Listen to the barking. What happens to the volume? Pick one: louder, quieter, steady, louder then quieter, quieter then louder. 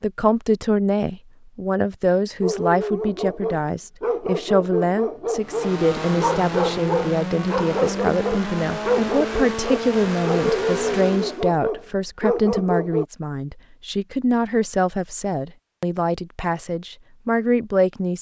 steady.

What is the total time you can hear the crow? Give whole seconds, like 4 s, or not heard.
not heard.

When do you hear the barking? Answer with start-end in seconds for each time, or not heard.
2.4-13.1.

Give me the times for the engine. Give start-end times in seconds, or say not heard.
5.3-11.4.